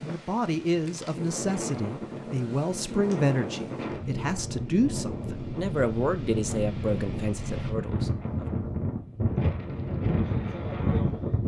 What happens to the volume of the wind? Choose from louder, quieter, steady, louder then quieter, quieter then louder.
louder.